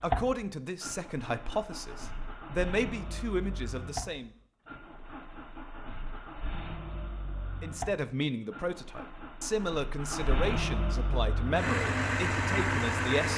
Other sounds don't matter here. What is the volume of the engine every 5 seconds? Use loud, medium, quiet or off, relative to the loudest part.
medium, quiet, loud.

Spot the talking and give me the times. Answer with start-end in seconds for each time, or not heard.
0.0-4.3, 7.6-13.3.